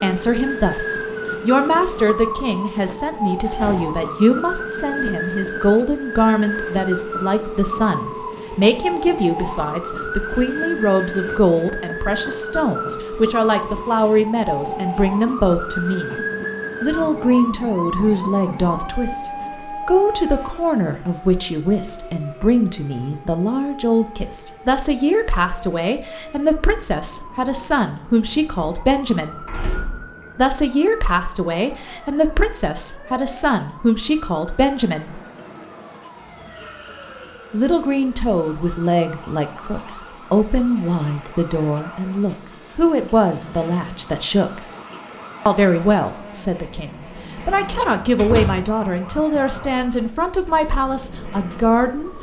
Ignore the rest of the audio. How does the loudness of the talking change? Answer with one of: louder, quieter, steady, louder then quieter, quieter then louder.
steady.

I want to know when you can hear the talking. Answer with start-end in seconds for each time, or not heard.
0.0-16.2, 16.8-29.4, 30.4-35.2, 37.5-44.6, 45.5-52.1.